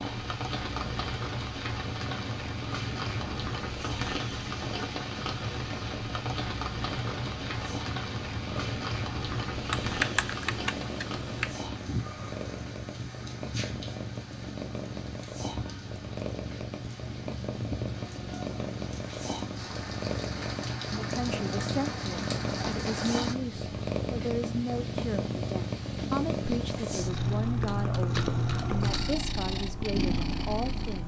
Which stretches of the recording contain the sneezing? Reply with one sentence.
The sneezing can't be heard in this clip.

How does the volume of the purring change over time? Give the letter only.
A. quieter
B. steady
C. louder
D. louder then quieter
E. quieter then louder
C.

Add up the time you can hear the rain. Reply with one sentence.
You can hear the rain for 23 seconds altogether.